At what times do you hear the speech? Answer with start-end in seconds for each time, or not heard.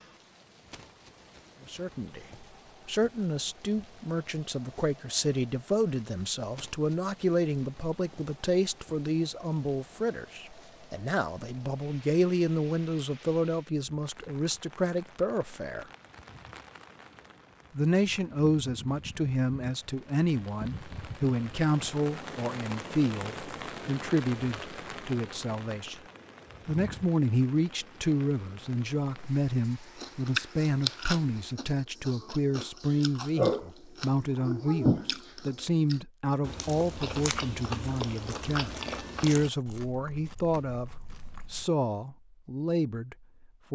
1.6-15.8, 17.8-26.0, 26.6-43.7.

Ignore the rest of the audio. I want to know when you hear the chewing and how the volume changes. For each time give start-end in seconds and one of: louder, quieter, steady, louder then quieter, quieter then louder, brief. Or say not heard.
29.9-41.6 quieter.